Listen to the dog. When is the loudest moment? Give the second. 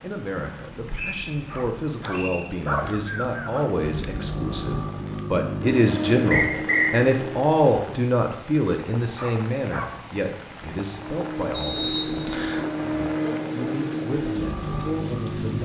3 s.